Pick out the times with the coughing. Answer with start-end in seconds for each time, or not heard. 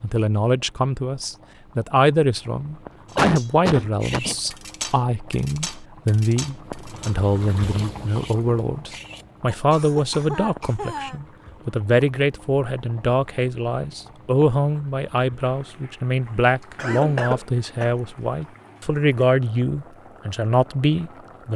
3.1-4.3, 9.4-11.2, 16.8-17.9.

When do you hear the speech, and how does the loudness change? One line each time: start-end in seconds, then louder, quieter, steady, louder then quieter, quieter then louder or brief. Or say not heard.
0.0-21.5 steady.